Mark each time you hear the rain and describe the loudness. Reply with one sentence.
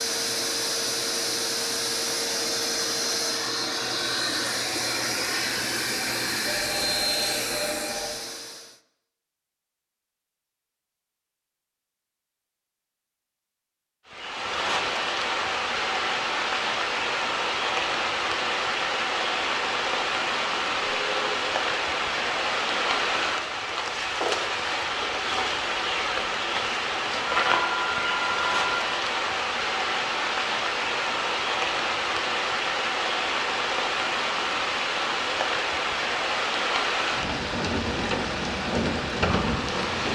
You can hear the rain from 14.1 to 40.0 s, at a steady volume.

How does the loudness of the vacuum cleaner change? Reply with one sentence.
The loudness of the vacuum cleaner stays about the same.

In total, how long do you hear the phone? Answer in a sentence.
The phone can be heard for 4 seconds in total.